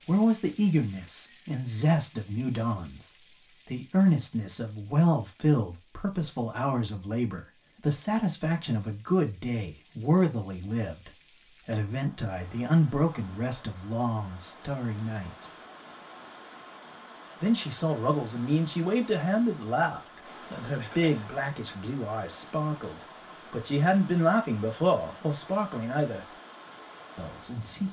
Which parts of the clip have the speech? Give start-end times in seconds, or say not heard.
0.1-15.5, 17.4-26.2, 27.1-27.8.